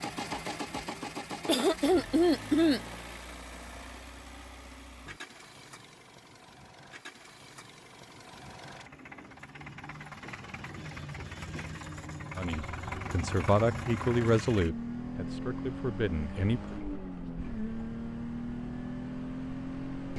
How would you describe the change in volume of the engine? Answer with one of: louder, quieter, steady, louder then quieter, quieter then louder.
quieter then louder.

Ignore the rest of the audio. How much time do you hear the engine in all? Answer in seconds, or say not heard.
20 s.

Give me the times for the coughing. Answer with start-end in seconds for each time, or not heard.
1.4-2.8.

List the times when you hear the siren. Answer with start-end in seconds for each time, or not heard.
not heard.